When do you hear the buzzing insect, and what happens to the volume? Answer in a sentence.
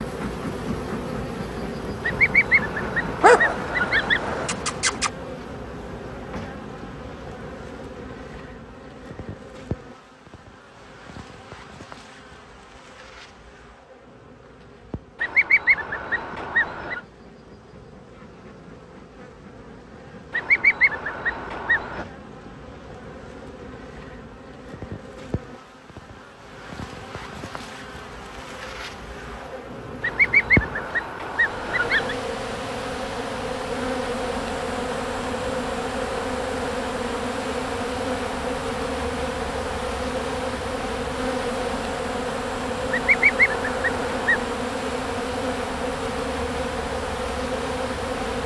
You can hear the buzzing insect from 0.0 to 48.4 s, getting quieter then louder.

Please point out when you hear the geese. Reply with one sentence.
The geese can be heard from 2.0 to 4.5 s, from 15.2 to 17.0 s, from 20.3 to 22.1 s, from 30.0 to 32.1 s and from 42.9 to 44.5 s.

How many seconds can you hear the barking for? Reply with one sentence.
You can hear the barking for 2 seconds altogether.